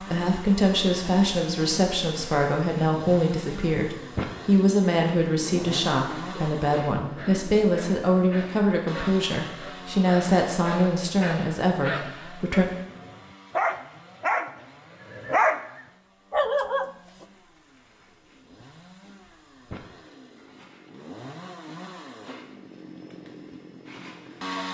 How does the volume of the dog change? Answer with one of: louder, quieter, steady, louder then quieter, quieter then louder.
louder.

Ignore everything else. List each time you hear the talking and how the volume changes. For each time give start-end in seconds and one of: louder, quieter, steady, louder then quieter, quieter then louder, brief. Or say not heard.
0.0-12.7 steady.